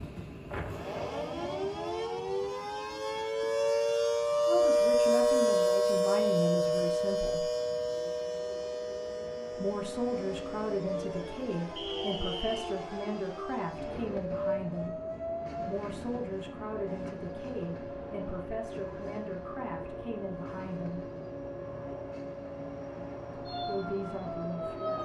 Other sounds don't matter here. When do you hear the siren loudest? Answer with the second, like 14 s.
5 s.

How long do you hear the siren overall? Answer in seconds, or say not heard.
25 s.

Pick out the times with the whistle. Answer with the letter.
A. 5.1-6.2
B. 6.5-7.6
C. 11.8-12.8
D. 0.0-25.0
C.